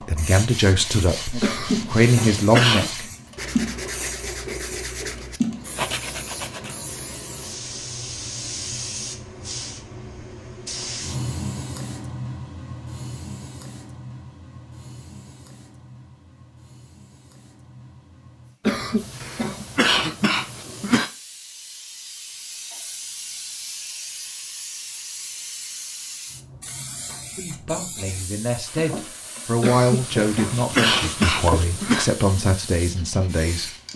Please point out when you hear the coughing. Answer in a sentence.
You can hear the coughing from 1.4 to 2.9 s, from 18.6 to 21.1 s and from 29.6 to 32.1 s.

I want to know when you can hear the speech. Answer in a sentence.
The speech can be heard from 0.0 to 3.1 s and from 27.4 to 33.7 s.